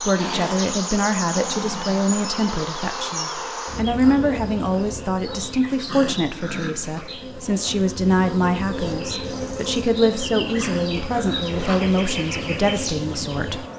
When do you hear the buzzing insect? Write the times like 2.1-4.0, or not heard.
0.0-13.7.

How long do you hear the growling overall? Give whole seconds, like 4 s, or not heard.
4 s.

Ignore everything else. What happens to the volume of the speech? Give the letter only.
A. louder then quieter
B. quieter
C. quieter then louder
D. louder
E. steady
E.